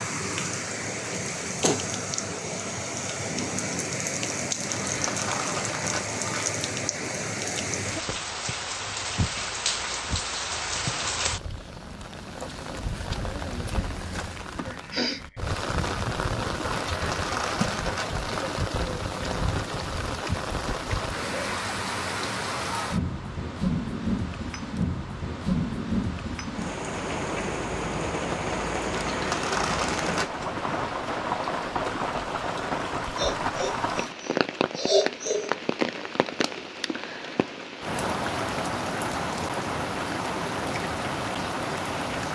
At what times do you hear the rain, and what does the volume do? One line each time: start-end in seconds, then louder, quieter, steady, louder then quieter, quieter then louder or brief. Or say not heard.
0.0-42.3 steady.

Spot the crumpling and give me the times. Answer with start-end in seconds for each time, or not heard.
4.7-6.6, 16.8-18.2, 28.9-30.4.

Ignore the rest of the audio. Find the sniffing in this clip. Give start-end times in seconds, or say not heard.
14.6-15.2, 33.1-35.5.